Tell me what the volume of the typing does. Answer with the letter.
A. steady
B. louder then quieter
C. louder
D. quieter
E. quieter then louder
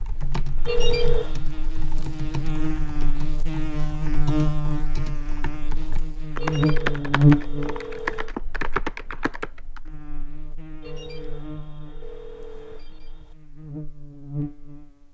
C.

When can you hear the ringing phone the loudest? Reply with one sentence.
The volume of the ringing phone peaks at 1 second.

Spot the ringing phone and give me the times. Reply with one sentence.
You can hear the ringing phone from 0.7 to 1.4 s, from 6.3 to 8.3 s and from 10.8 to 13.3 s.